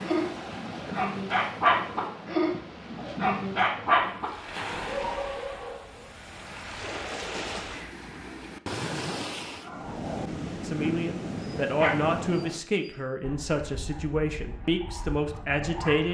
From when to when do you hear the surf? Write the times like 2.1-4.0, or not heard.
0.0-12.6.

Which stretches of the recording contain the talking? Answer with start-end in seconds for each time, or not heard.
10.6-16.1.